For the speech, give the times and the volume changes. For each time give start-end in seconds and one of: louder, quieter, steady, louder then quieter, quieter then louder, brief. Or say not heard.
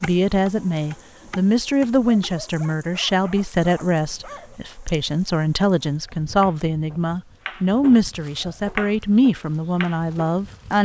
0.0-10.8 steady.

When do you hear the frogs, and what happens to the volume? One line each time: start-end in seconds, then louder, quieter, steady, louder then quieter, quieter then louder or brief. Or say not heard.
not heard.